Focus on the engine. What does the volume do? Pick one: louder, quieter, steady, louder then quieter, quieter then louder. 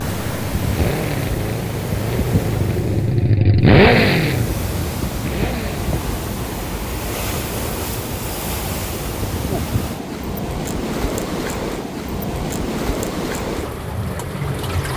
louder then quieter.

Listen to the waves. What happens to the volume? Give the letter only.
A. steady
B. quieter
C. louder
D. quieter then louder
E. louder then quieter
A.